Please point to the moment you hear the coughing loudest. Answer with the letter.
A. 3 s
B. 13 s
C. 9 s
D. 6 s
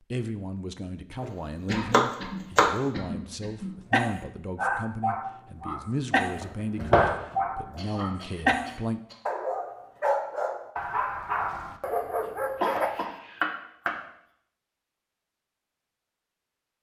B.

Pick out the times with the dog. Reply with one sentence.
You can hear the dog from 3.9 to 13.1 s.